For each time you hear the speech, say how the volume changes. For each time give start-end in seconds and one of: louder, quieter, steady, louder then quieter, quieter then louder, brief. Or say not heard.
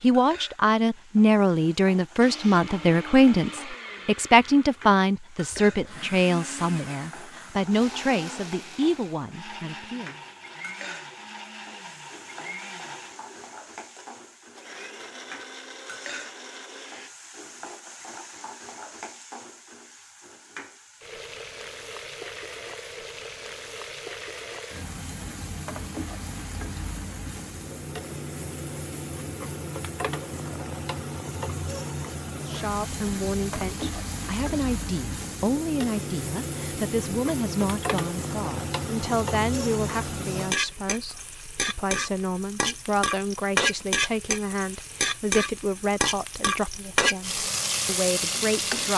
0.0-10.2 quieter
32.4-48.9 steady.